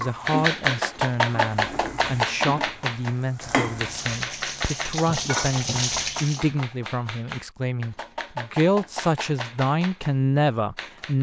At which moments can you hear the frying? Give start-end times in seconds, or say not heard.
0.0-6.5.